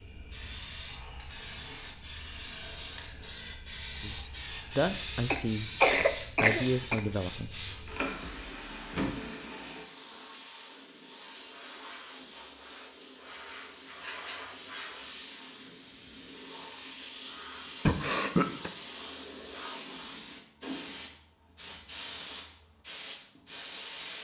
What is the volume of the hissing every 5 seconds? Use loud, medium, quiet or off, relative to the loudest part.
loud, loud, medium, loud, loud.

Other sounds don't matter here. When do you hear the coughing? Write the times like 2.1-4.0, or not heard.
5.3-7.0, 17.9-18.7.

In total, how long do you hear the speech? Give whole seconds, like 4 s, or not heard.
3 s.